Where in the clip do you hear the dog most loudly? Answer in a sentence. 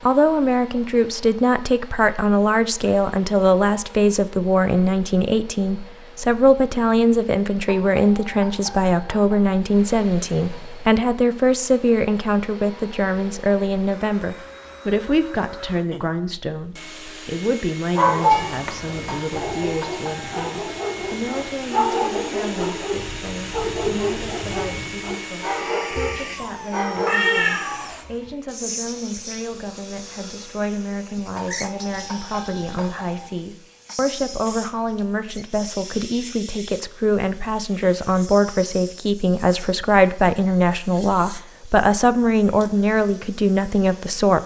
The loudest moment of the dog is at 18 seconds.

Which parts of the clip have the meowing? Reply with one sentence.
The meowing can be heard from 18.3 to 19.4 s and from 27.1 to 28.1 s.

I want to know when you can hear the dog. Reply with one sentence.
You can hear the dog from 17.9 to 27.6 s.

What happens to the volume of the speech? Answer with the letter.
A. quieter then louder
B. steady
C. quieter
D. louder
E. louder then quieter
A.